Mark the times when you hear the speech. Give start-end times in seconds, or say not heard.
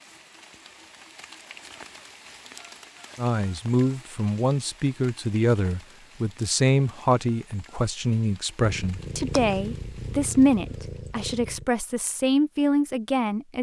3.1-13.5.